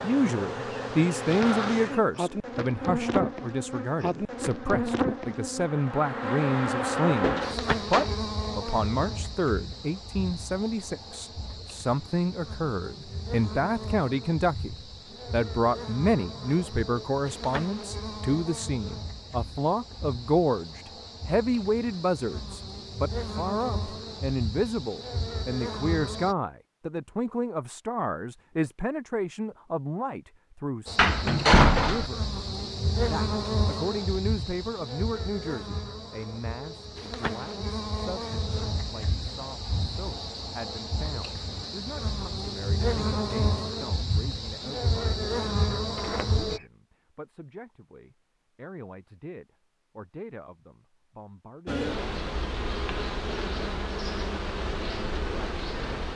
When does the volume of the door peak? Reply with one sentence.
The loudest moment of the door is at 32 seconds.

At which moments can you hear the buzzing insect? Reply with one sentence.
The buzzing insect can be heard from 0.0 to 26.4 s, from 30.9 to 46.6 s and from 51.6 to 56.1 s.